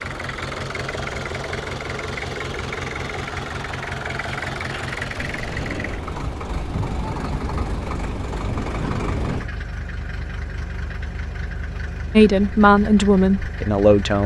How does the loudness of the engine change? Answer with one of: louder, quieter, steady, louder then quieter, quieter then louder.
quieter.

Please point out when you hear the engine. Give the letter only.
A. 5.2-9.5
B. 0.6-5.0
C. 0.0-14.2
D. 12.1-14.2
C.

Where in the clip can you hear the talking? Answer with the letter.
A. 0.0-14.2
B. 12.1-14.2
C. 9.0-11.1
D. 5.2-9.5
B.